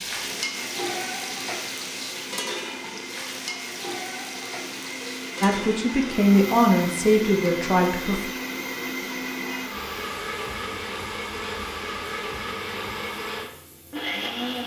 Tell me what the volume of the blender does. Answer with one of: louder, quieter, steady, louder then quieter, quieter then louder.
louder.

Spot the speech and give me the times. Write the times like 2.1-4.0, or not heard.
5.4-8.2.